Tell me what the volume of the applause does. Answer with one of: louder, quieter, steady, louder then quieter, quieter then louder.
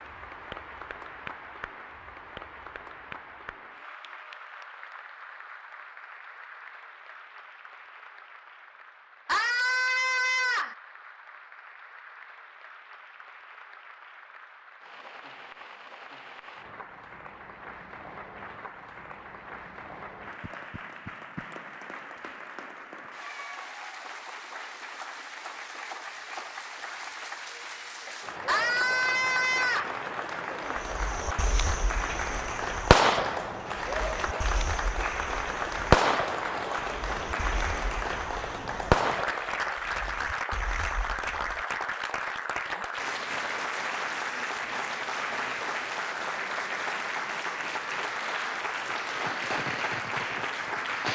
louder.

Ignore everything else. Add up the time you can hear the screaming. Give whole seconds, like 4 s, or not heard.
3 s.